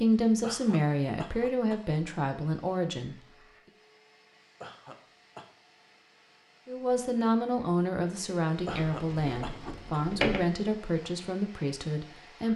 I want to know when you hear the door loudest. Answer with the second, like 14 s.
10 s.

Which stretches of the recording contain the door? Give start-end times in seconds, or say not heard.
8.9-10.4.